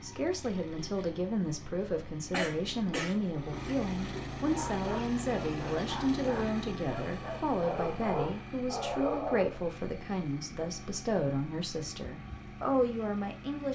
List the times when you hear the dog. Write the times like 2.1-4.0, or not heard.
4.5-9.7.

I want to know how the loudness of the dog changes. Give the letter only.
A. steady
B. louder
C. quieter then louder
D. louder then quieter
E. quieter
B.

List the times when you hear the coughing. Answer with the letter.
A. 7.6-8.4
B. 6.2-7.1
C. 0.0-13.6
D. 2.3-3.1
D.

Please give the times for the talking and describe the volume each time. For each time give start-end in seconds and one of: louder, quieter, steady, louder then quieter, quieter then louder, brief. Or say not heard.
0.0-13.6 steady.